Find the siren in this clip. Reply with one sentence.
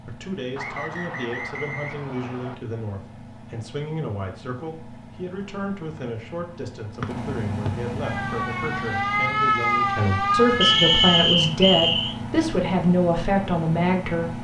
The siren can be heard from 8.0 to 11.2 s.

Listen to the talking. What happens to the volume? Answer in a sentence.
The loudness of the talking goes up.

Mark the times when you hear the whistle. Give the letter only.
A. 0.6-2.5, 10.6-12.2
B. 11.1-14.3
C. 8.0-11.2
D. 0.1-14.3
A.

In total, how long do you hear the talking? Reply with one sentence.
You can hear the talking for 14 seconds altogether.